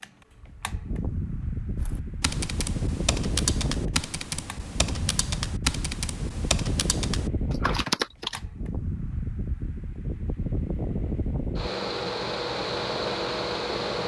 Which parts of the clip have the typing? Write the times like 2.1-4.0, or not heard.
1.8-8.4.